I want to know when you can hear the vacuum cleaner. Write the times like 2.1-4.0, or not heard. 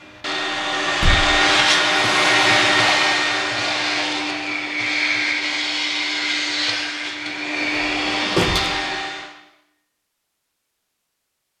0.0-9.3.